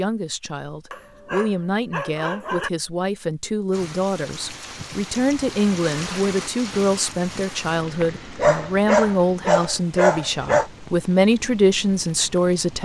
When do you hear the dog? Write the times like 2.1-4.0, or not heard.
0.9-2.7, 8.0-10.7.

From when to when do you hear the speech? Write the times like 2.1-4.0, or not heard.
0.0-12.8.